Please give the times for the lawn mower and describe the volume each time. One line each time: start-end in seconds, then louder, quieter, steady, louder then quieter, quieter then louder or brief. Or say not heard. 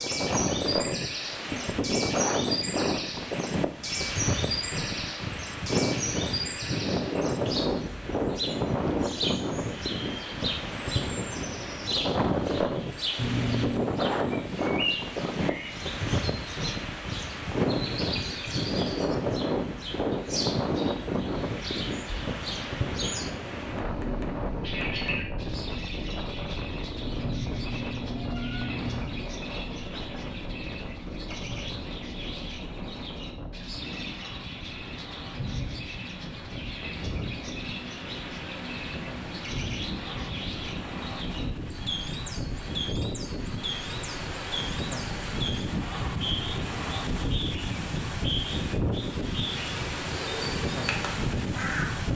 not heard.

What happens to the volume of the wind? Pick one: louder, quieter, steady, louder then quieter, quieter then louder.
quieter then louder.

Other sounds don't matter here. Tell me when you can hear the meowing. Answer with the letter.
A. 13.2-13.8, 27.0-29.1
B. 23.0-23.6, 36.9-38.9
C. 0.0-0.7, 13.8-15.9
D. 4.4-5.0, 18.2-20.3
A.